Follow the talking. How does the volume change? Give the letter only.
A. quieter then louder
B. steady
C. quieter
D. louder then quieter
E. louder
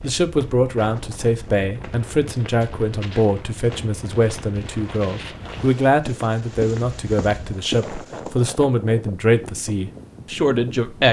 B.